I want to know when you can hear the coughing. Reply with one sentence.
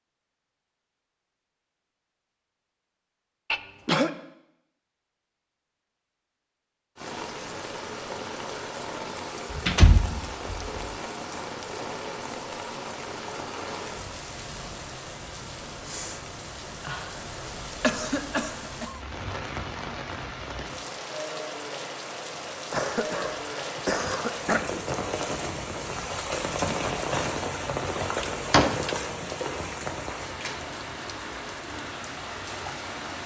You can hear the coughing from 3.5 to 4.1 s, from 17.8 to 19.0 s and from 22.7 to 24.6 s.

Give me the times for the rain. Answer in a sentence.
You can hear the rain from 7.0 to 33.2 s.